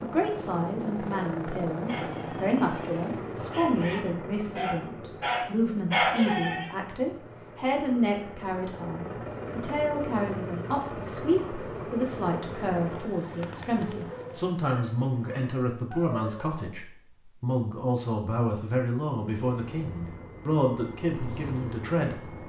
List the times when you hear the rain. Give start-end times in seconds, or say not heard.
not heard.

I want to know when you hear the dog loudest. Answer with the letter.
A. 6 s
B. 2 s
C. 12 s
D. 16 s
A.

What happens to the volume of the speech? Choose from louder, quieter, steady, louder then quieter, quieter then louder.
steady.